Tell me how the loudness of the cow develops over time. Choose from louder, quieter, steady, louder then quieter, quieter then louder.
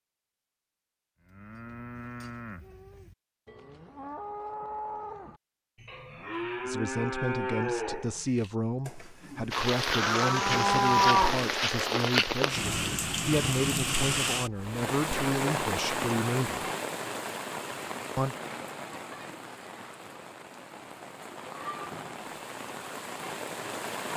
louder.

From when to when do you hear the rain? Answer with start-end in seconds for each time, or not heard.
9.5-24.1.